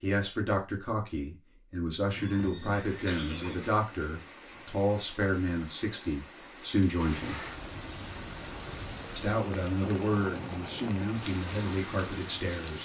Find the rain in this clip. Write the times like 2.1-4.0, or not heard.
2.5-12.8.